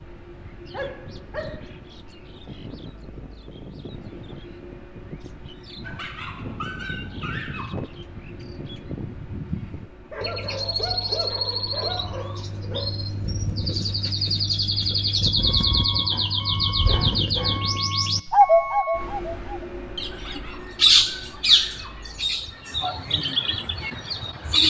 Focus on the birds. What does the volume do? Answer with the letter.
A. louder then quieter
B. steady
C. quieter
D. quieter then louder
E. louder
E.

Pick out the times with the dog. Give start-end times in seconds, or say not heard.
0.7-1.6, 5.8-7.8, 10.1-12.9, 16.1-17.8, 20.1-22.0.